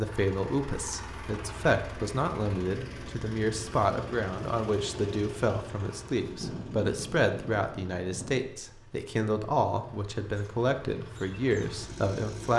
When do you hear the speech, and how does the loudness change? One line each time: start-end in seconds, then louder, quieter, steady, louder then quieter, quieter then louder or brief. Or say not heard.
0.0-12.5 steady.